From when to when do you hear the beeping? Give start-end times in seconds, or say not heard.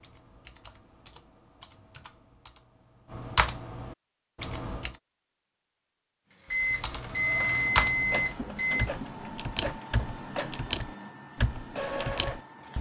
6.5-8.9.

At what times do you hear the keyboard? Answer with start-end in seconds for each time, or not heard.
0.0-5.0, 6.7-12.7.